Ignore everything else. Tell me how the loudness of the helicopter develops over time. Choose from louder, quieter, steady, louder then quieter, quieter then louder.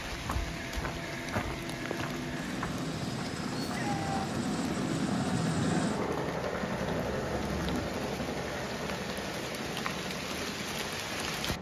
louder then quieter.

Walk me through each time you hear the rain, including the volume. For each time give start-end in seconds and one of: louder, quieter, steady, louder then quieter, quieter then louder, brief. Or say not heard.
0.0-11.5 quieter then louder.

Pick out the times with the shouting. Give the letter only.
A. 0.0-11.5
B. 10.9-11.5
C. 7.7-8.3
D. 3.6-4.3
D.